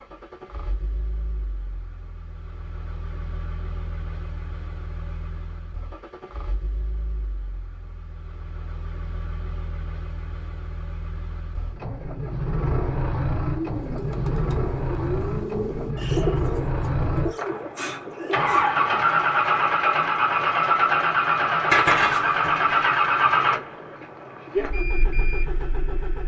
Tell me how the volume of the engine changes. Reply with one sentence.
The loudness of the engine goes up.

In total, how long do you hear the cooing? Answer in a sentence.
The cooing can be heard for 5 seconds in total.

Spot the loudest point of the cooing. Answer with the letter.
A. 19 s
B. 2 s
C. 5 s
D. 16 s
D.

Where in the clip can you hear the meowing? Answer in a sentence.
You can hear the meowing from 21.7 to 22.9 s.